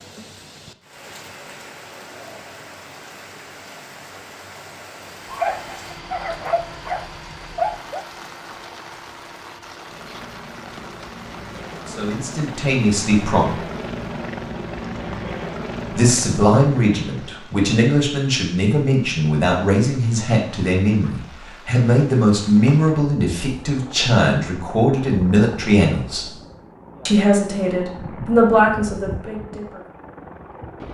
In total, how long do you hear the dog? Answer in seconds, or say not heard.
3 s.